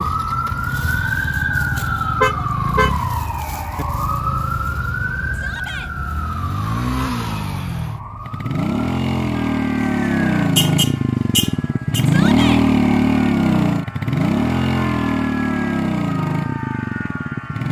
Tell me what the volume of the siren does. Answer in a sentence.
The loudness of the siren goes down, then up.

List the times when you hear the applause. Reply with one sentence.
You can't hear the applause here.